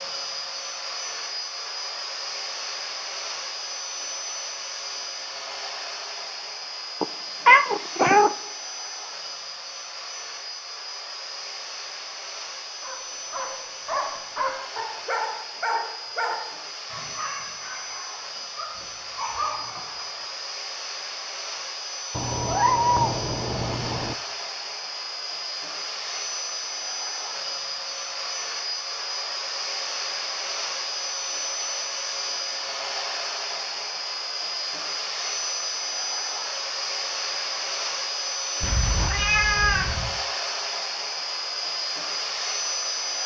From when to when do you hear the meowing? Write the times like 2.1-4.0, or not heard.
7.0-8.3, 22.1-24.1, 38.6-40.2.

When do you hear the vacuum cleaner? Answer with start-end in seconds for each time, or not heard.
0.0-43.2.